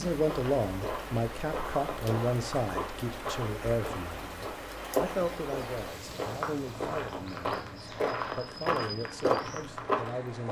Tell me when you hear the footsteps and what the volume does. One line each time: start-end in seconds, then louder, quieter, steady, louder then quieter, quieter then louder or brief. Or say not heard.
0.1-10.4 louder.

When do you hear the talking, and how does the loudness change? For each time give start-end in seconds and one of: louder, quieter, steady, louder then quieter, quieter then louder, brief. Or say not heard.
0.0-10.4 quieter.